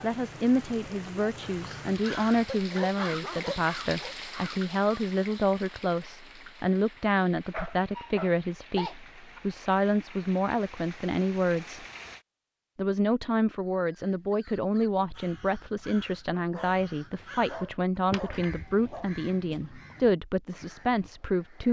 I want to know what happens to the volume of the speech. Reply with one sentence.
The volume of the speech stays about the same.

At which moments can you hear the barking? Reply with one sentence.
The barking can be heard from 2.5 to 4.2 s, from 7.5 to 9.4 s and from 16.4 to 19.1 s.